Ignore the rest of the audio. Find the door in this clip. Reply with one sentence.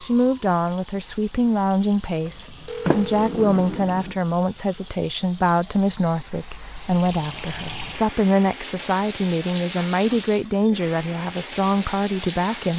You can hear the door from 2.9 to 4.2 s.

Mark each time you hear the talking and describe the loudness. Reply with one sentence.
The talking can be heard from 0.0 to 12.7 s, at a steady volume.